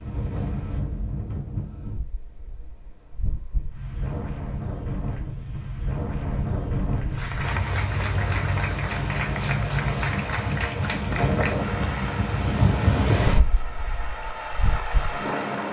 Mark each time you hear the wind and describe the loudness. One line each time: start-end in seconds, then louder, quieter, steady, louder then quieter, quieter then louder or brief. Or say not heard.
0.0-15.6 louder.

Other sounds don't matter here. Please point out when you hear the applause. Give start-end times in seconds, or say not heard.
7.0-15.6.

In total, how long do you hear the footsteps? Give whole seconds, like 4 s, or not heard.
not heard.